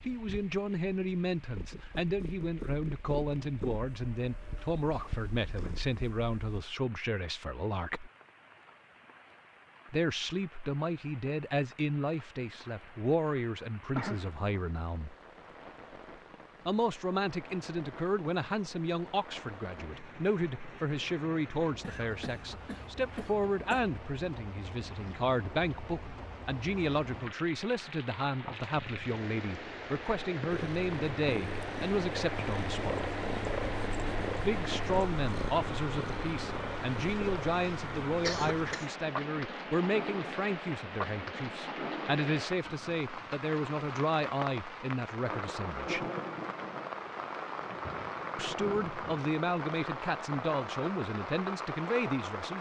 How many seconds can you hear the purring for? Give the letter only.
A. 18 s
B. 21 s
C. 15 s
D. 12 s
C.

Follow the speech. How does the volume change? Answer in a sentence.
The loudness of the speech stays about the same.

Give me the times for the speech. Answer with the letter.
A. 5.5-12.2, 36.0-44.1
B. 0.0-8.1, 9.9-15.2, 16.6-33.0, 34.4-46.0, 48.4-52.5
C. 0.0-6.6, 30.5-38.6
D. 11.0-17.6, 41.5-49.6
B.